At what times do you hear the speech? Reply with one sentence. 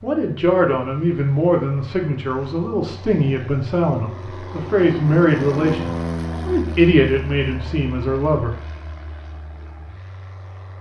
The speech can be heard from 0.0 to 8.6 s.